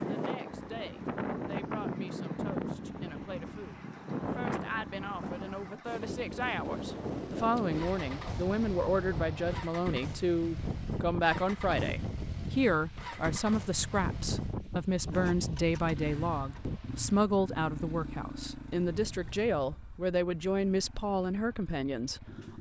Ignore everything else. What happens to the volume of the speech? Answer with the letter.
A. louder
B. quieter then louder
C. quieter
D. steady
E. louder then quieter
A.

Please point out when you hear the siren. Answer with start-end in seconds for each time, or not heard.
not heard.